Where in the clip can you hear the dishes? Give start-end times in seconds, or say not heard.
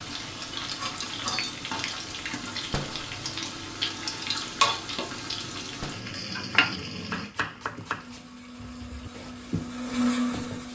not heard.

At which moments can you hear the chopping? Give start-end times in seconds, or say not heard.
7.1-10.6.